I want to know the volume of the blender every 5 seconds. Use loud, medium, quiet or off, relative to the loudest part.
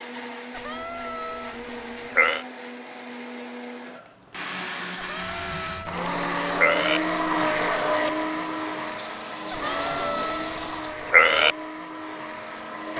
medium, loud, medium.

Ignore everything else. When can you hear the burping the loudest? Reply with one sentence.
The volume of the burping peaks at 11 seconds.